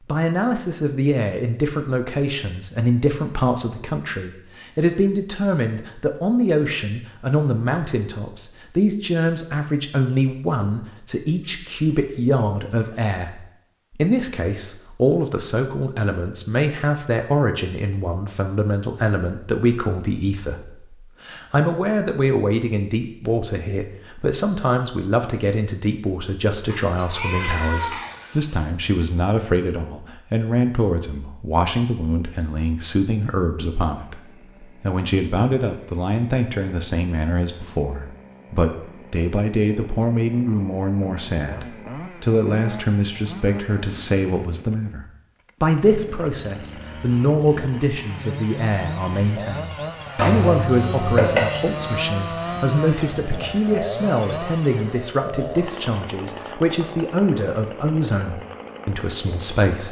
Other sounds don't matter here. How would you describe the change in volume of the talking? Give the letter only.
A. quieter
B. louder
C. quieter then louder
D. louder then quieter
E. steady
E.